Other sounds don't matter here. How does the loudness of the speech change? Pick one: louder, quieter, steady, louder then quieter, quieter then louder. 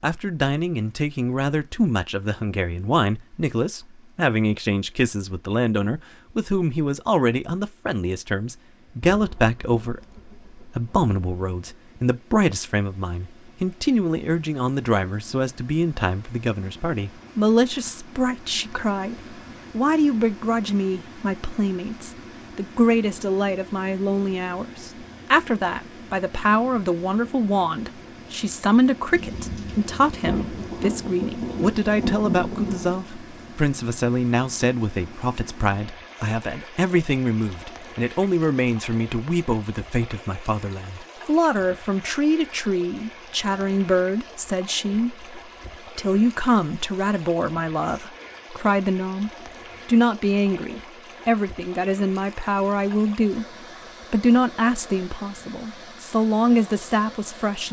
steady.